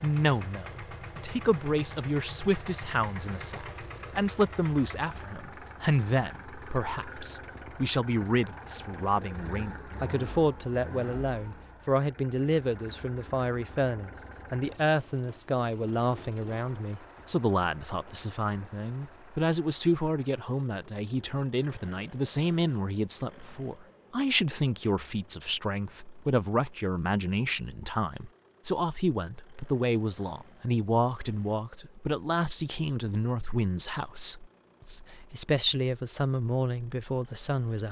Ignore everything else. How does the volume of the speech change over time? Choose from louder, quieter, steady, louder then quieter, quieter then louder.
steady.